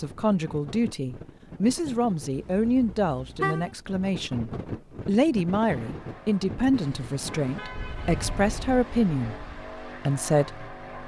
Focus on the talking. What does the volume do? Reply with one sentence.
The volume of the talking stays about the same.